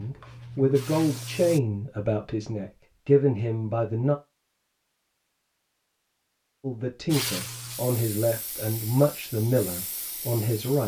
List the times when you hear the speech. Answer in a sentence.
The speech can be heard from 0.0 to 4.2 s and from 6.6 to 10.8 s.